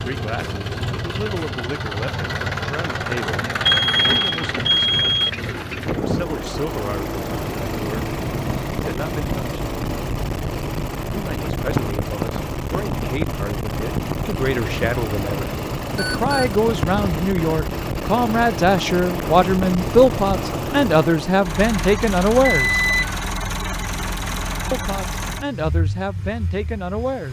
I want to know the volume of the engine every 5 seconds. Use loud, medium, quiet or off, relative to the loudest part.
loud, loud, loud, loud, loud, medium.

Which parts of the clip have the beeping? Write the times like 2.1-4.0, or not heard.
3.6-5.3, 15.9-16.6, 22.4-23.1.